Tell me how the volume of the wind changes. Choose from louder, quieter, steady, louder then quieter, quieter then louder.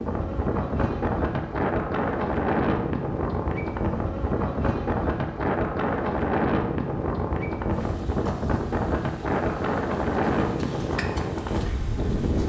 steady.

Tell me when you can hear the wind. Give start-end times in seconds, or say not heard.
0.0-12.4.